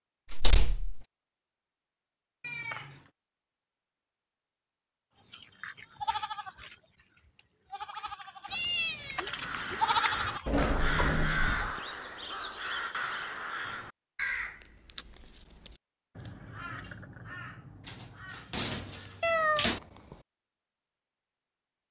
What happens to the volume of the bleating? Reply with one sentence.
The loudness of the bleating goes down, then up.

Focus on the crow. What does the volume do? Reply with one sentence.
The volume of the crow goes down.